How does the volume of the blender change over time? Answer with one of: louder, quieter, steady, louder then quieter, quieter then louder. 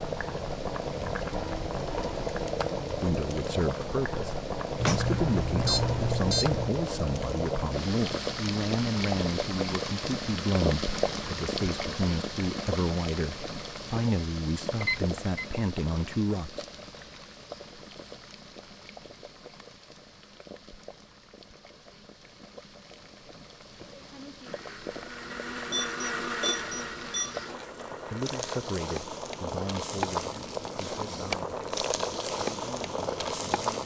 louder then quieter.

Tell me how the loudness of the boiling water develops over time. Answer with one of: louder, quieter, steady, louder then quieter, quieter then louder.
quieter then louder.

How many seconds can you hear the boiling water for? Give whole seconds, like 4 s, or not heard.
34 s.